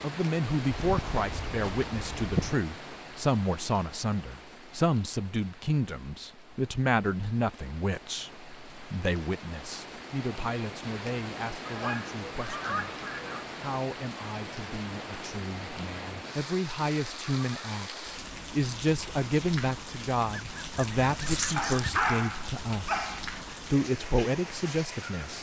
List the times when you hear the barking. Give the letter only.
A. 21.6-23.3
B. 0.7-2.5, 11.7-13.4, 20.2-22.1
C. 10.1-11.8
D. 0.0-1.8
A.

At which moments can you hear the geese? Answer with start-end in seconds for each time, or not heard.
0.7-2.5, 11.7-13.4, 20.2-22.1.